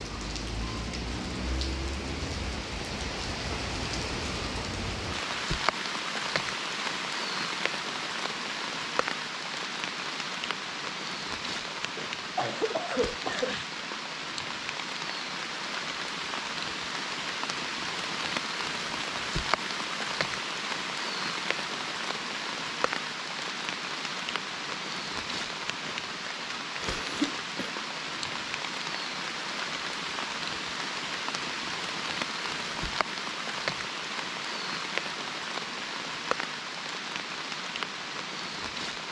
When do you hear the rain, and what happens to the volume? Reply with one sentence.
You can hear the rain from 0.0 to 39.0 s, at a steady volume.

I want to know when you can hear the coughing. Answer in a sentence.
You can hear the coughing from 11.9 to 13.7 s and from 26.8 to 27.8 s.